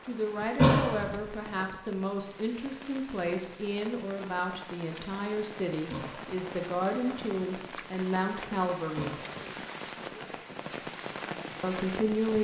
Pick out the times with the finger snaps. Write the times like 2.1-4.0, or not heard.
not heard.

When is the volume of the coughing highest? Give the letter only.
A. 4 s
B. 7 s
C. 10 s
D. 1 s
D.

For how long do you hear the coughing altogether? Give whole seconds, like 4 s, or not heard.
2 s.